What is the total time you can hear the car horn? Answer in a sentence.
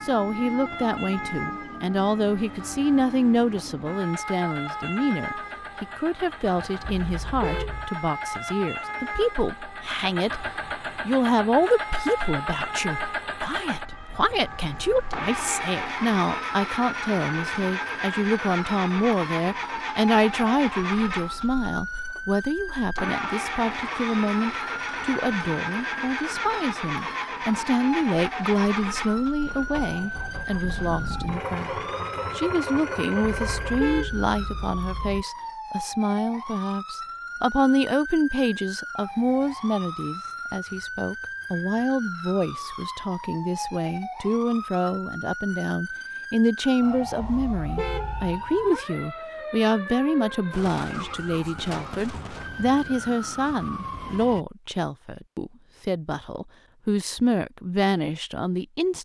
You can hear the car horn for 4 seconds altogether.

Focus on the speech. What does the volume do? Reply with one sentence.
The volume of the speech stays about the same.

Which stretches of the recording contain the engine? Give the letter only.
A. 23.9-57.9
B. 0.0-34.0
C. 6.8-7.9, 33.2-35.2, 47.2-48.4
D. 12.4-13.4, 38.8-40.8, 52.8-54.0
B.